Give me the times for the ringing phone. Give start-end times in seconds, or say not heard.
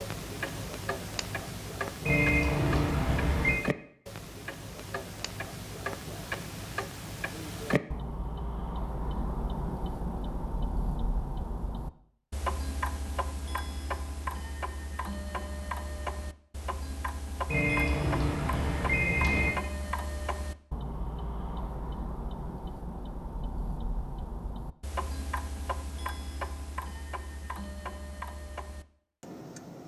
2.0-3.6, 17.4-19.5.